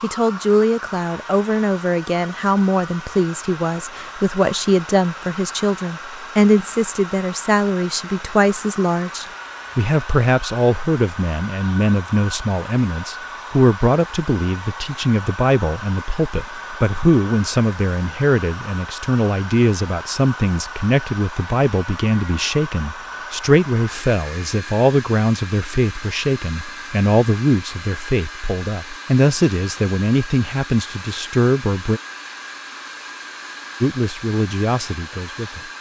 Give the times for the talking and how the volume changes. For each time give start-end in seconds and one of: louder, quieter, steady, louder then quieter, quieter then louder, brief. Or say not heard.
0.0-32.0 steady
33.8-35.7 brief.